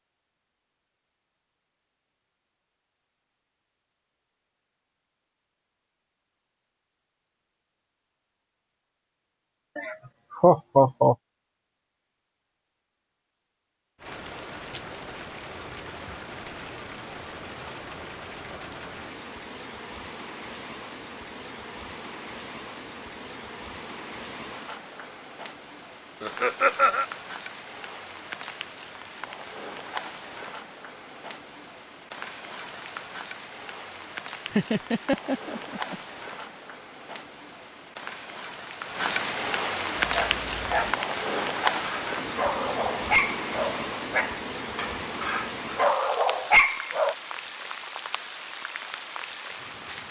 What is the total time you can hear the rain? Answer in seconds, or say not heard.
36 s.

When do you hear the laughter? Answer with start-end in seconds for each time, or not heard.
9.8-11.2, 26.2-27.1, 34.5-36.0.